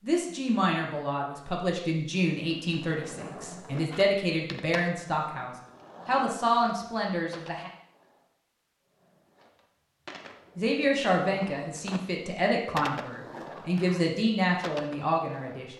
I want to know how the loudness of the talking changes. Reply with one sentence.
The volume of the talking stays about the same.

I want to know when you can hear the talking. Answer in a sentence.
You can hear the talking from 0.0 to 7.7 s and from 10.6 to 15.7 s.